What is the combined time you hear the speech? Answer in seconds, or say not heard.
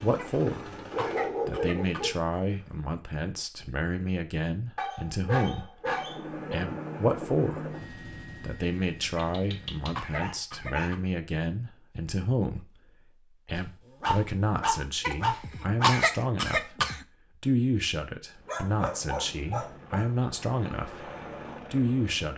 20 s.